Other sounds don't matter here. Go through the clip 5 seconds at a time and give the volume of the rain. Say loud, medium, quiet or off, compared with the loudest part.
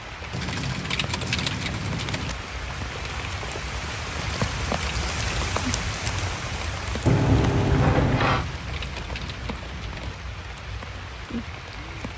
loud, loud, medium.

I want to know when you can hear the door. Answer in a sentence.
You can hear the door from 7.0 to 8.4 s.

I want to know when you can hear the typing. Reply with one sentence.
The typing can be heard from 0.3 to 2.4 s, from 4.2 to 6.1 s and from 8.3 to 10.2 s.